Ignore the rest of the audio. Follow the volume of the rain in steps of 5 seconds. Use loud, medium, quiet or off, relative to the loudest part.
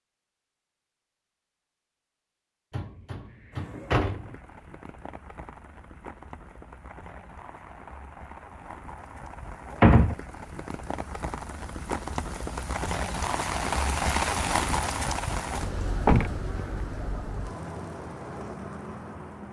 quiet, quiet, loud, medium.